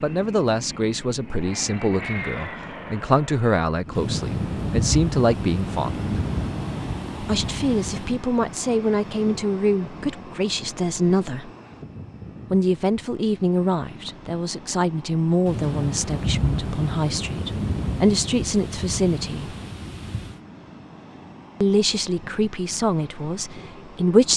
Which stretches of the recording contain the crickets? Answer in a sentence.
The crickets can't be heard in this clip.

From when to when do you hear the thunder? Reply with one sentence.
You can hear the thunder from 4.0 to 8.2 s and from 15.4 to 20.4 s.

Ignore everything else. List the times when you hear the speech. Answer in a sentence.
The speech can be heard from 0.0 to 6.1 s, from 7.2 to 11.5 s, from 12.5 to 19.6 s and from 21.6 to 24.3 s.